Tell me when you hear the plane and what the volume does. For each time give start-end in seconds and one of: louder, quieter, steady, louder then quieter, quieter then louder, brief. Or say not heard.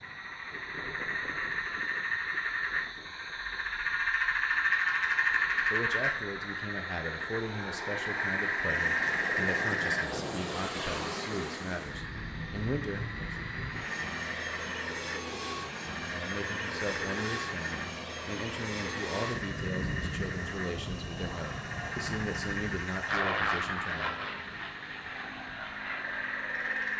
0.0-26.9 louder.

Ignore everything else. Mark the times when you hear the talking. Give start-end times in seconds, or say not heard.
5.7-13.3, 16.0-24.1.